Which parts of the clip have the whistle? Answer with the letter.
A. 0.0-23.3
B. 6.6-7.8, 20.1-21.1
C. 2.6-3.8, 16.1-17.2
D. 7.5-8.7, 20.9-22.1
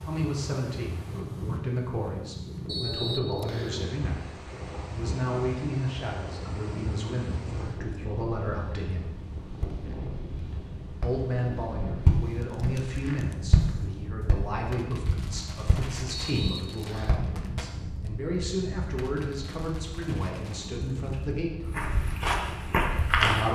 C.